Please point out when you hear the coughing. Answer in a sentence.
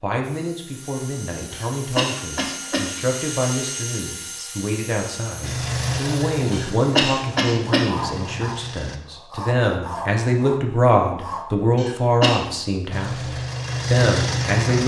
You can hear the coughing from 1.5 to 2.9 s, from 6.5 to 7.8 s and from 11.8 to 12.4 s.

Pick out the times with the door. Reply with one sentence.
The door can't be heard in this clip.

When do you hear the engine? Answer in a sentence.
The engine can be heard from 5.4 to 9.0 s and from 12.9 to 14.8 s.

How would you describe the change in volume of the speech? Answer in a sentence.
The loudness of the speech goes up.